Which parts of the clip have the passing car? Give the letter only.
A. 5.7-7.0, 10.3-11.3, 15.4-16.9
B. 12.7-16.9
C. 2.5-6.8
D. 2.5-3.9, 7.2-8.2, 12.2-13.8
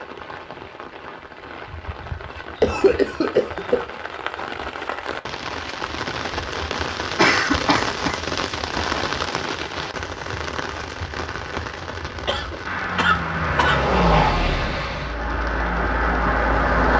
B.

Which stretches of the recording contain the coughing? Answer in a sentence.
You can hear the coughing from 2.5 to 3.9 s, from 7.2 to 8.2 s and from 12.2 to 13.8 s.